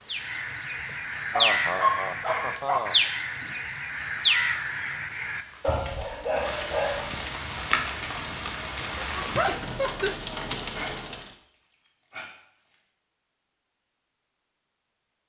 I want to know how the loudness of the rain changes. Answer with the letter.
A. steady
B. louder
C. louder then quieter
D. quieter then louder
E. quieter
B.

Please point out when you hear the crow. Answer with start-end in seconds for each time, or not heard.
0.1-5.9.